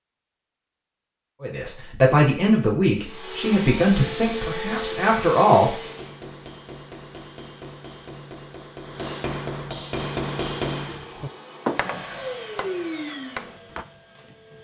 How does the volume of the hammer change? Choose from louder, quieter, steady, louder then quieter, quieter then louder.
louder then quieter.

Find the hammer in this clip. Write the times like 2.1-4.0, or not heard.
5.8-13.8.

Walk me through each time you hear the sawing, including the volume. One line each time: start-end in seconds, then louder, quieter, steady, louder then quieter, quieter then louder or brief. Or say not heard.
not heard.